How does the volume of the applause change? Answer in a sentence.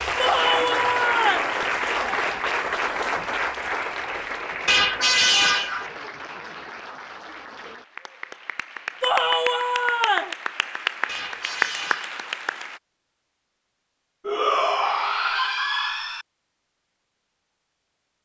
The loudness of the applause goes down, then up.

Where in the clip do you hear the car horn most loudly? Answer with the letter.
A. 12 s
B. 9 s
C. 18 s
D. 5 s
D.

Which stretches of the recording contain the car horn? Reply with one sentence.
The car horn can be heard from 4.7 to 5.9 s and from 11.1 to 12.2 s.